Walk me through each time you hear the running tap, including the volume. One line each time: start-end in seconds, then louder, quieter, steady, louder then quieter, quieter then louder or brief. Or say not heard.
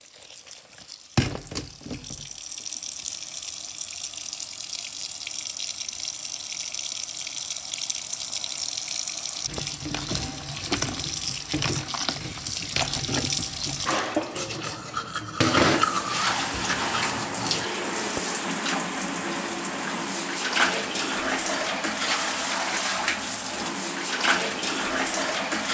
0.0-25.6 louder.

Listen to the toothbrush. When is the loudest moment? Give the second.
16 s.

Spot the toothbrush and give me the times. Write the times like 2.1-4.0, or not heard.
14.3-17.6.